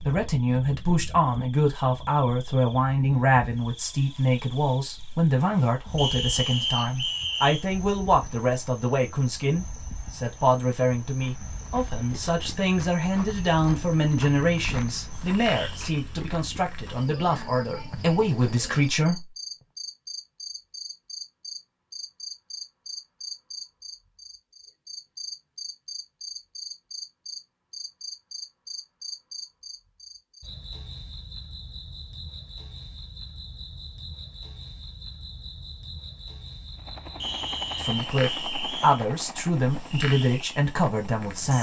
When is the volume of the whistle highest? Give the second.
7 s.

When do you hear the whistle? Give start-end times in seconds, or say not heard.
6.0-7.7, 37.2-39.0.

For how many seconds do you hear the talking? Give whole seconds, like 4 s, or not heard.
23 s.